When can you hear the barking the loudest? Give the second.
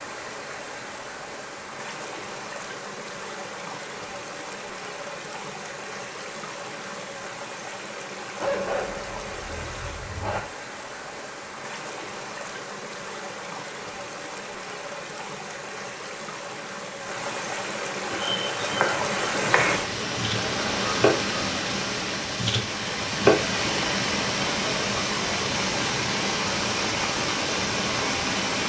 9 s.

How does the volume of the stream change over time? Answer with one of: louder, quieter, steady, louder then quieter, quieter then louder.
louder.